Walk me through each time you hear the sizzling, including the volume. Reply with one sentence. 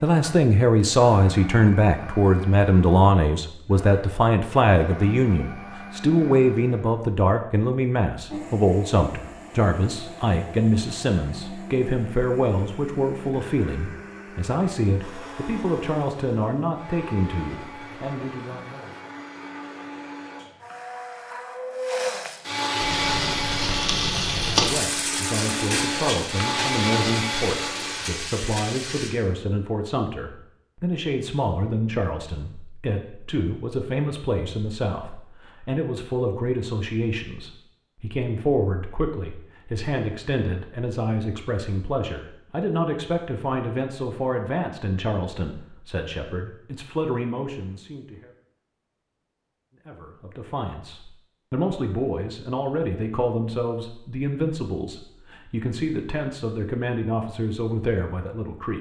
The sizzling can be heard from 22.8 to 29.1 s, getting quieter.